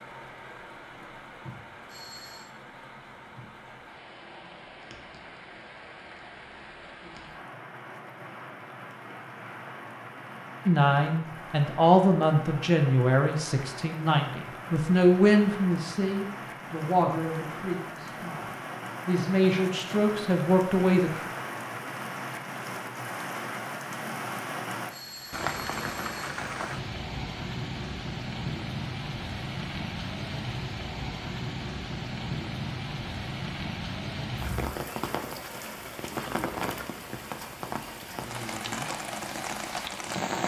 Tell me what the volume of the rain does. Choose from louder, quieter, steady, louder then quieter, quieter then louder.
louder.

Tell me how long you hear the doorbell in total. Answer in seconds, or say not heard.
2 s.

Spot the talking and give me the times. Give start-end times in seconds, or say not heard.
10.7-21.2.